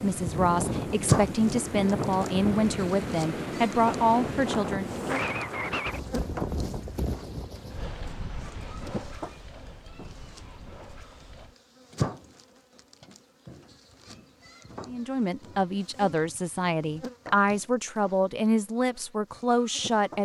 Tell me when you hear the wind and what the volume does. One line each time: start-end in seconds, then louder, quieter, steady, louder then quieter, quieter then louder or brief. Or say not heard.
0.0-11.6 quieter.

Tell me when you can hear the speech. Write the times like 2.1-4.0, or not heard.
0.0-5.2, 14.8-20.2.